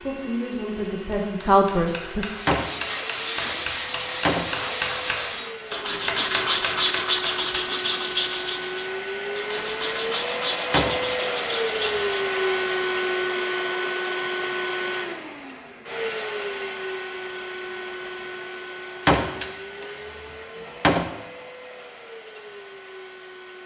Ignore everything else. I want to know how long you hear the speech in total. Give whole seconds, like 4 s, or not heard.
2 s.